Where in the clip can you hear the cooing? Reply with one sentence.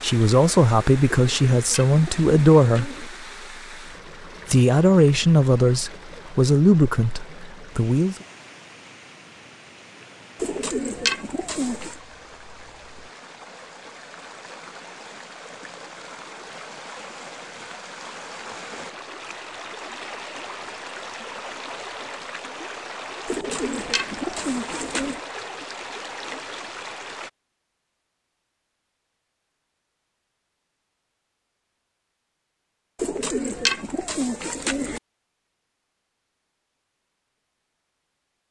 The cooing can be heard from 1.1 to 3.1 s, from 10.3 to 11.9 s, from 23.2 to 25.2 s and from 33.0 to 35.0 s.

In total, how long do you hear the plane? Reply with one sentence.
The plane can't be heard in this clip.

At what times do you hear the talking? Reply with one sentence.
The talking can be heard from 0.0 to 3.0 s and from 4.5 to 8.2 s.